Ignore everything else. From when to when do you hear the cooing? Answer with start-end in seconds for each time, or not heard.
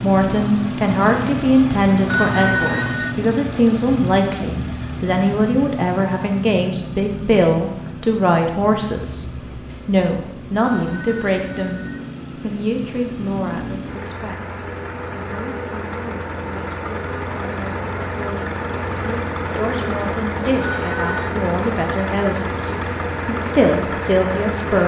not heard.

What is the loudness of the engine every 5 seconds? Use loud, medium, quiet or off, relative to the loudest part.
loud, medium, medium, loud, loud.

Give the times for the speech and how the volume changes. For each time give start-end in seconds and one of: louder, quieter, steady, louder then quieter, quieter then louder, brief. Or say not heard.
0.0-24.8 quieter then louder.